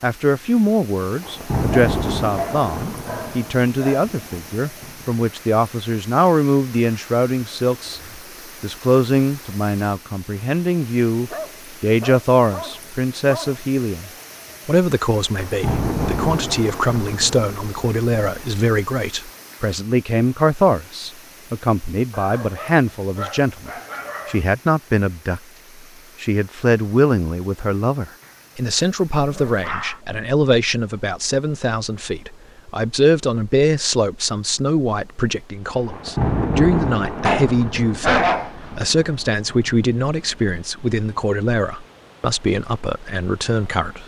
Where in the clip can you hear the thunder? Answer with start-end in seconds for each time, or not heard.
1.0-5.2, 15.2-18.6, 35.7-40.6.